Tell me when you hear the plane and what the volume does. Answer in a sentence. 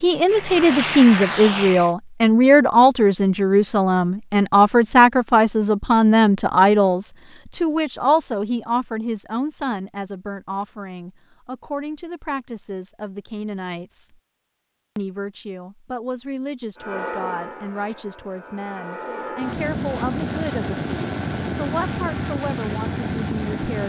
The plane can be heard briefly from 0.0 to 1.9 s; and from 16.8 to 23.8 s, getting louder.